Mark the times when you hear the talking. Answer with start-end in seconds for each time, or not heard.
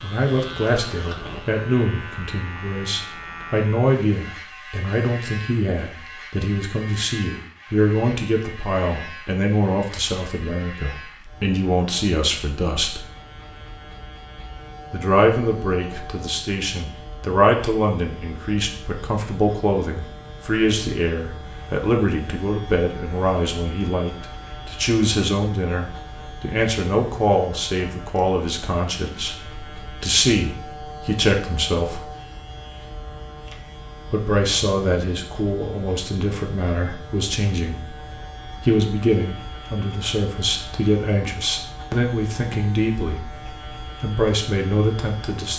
0.0-13.1, 14.9-32.0, 34.1-45.5.